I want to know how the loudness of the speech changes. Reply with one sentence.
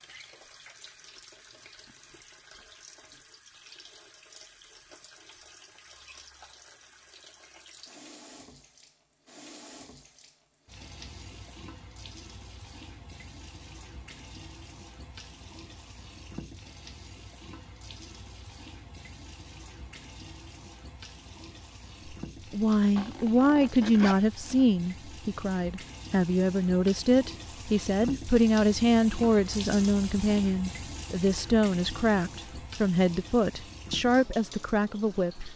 The volume of the speech stays about the same.